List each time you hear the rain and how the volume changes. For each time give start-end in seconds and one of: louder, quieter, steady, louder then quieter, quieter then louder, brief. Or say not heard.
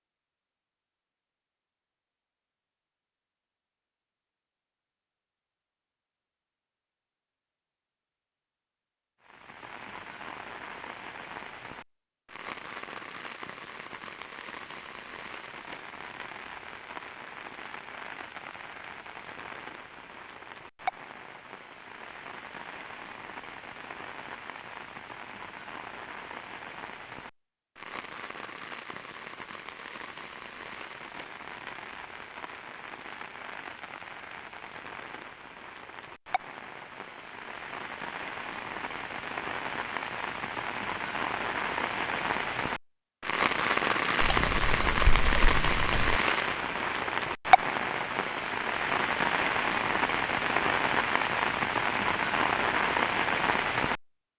9.2-54.0 louder.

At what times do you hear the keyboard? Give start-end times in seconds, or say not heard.
44.2-46.2.